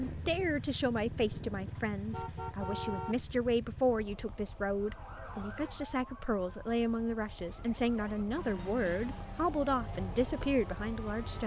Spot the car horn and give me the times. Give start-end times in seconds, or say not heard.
1.8-3.1.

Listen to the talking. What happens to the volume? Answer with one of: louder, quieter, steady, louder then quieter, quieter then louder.
steady.